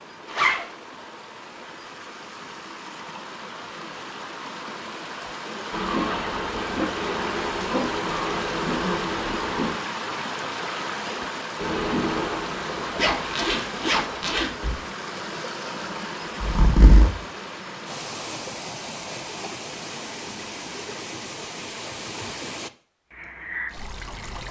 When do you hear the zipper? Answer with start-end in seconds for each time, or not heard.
0.2-0.7, 12.9-14.8, 16.4-17.1.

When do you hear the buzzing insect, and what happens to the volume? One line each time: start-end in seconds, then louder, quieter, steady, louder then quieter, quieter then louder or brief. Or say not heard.
5.7-9.8 steady
11.6-13.1 brief.